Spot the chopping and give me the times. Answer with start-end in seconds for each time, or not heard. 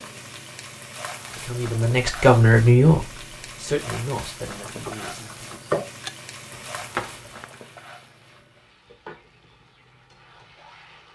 4.6-7.5.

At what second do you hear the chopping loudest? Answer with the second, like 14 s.
6 s.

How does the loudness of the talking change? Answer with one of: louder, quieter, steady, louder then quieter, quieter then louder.
quieter.